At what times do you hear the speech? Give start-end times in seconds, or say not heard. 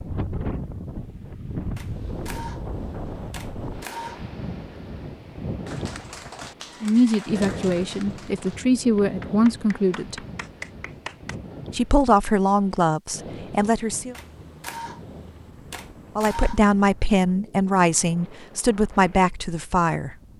6.8-10.2, 11.7-14.2, 16.1-20.1.